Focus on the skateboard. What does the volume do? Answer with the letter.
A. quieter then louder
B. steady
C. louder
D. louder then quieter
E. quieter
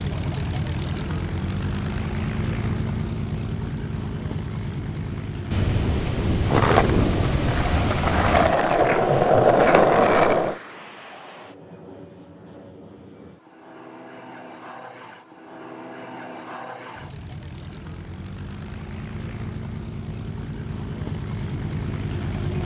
C.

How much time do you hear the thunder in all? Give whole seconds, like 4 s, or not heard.
3 s.